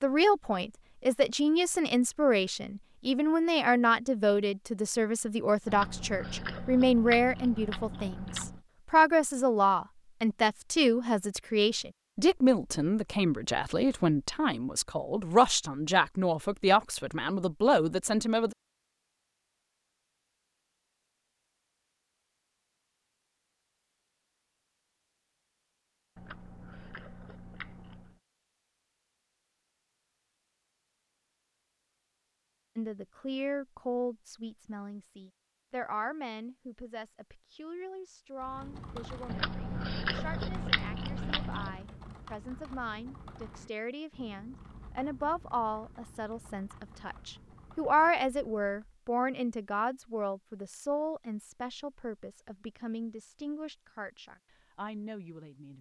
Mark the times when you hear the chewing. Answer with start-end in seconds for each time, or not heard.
5.7-8.6, 26.1-28.2, 39.2-41.9.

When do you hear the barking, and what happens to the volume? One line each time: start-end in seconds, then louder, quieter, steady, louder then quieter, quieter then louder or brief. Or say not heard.
not heard.